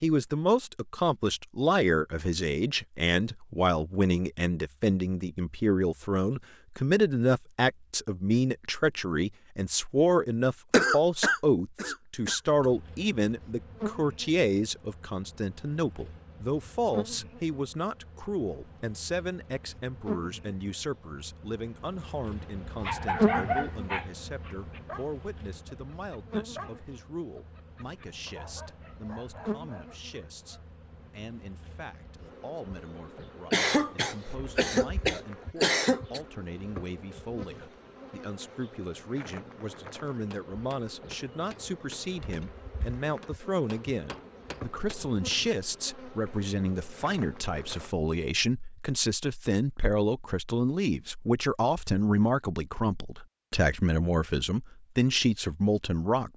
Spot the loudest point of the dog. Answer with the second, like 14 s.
23 s.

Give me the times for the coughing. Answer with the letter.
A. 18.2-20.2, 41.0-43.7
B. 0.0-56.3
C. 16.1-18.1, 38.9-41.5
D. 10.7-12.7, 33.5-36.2
D.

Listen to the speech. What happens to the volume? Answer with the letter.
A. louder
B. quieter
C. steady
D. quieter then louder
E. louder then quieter
D.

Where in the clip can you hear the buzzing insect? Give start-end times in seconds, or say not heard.
12.6-48.0.